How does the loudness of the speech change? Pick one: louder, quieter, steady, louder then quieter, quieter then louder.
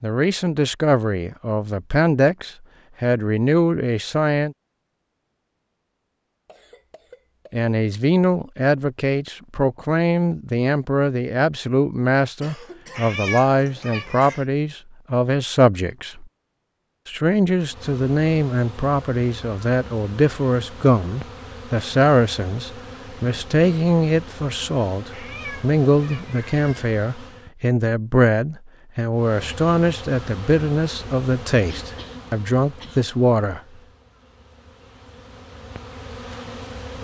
steady.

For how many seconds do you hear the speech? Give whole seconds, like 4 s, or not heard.
30 s.